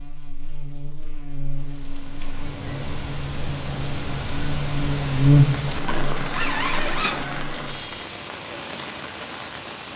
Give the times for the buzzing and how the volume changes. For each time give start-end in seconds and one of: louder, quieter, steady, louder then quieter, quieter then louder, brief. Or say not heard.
0.0-7.8 louder then quieter.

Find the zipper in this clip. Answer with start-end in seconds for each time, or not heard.
5.5-7.2.